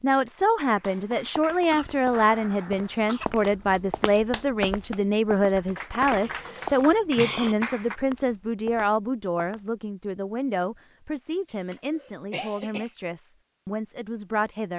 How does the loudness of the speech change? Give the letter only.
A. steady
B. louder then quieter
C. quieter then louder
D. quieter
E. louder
D.